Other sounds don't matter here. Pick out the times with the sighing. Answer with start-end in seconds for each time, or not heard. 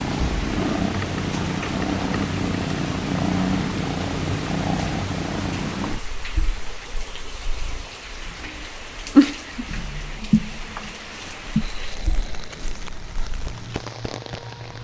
11.6-12.9.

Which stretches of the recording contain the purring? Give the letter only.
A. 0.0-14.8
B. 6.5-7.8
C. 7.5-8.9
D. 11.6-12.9
A.